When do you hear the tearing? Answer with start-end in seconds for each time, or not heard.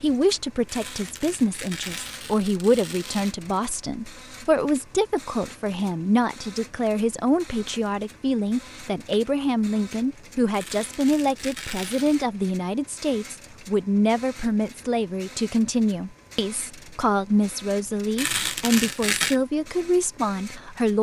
0.7-3.4, 10.5-12.2, 18.1-19.4.